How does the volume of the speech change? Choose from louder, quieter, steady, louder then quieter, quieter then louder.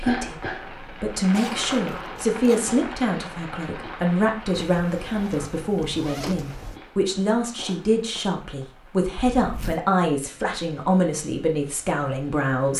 steady.